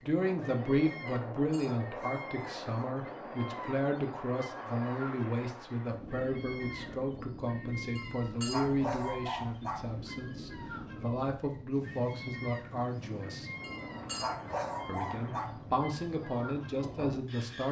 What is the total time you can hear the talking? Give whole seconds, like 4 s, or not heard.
16 s.